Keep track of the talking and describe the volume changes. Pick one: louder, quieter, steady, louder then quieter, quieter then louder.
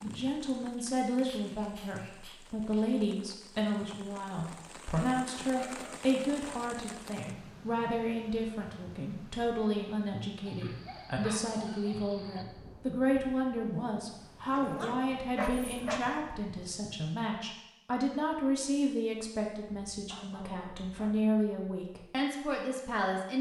steady.